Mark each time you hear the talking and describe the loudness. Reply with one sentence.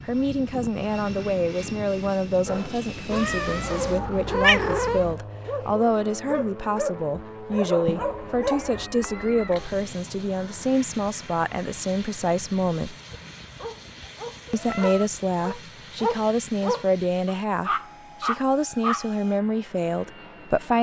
The talking can be heard from 0.1 to 12.9 s, at a steady volume; and from 14.5 to 20.7 s, at a steady volume.